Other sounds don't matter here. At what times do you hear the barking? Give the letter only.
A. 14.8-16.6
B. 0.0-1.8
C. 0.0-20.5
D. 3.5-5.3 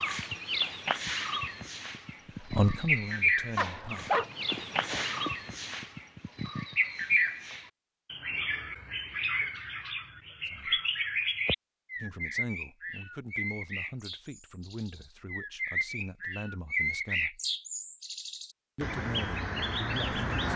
D.